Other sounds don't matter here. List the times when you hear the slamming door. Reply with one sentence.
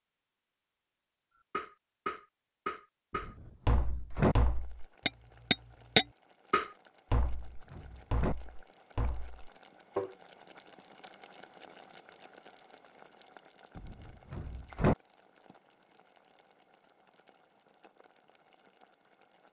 The slamming door can be heard from 3.1 to 4.3 s, from 7.2 to 8.3 s and from 13.8 to 14.9 s.